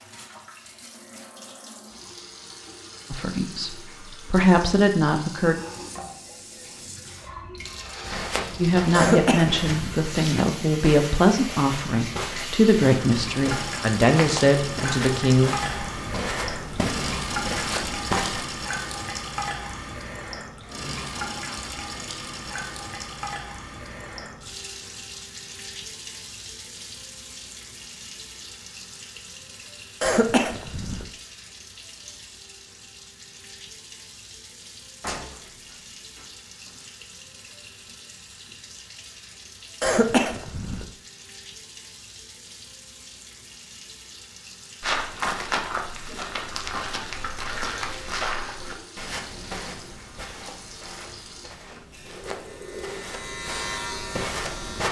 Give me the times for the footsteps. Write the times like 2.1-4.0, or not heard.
8.0-18.4, 44.8-54.8.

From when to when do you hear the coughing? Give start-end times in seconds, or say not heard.
8.9-10.0, 30.0-31.1, 39.8-40.9.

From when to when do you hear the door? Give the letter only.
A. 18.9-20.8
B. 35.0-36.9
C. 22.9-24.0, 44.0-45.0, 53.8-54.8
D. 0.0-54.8
B.